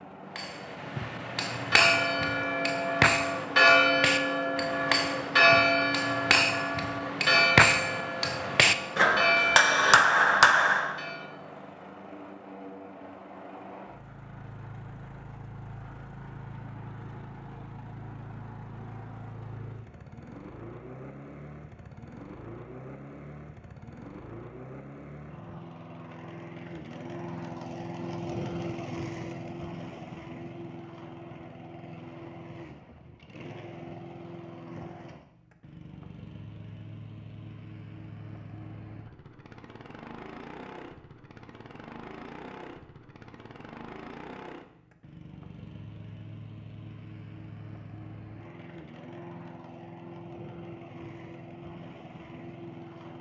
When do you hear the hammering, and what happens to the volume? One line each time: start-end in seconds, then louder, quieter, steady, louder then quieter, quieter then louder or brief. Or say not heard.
0.3-10.9 louder.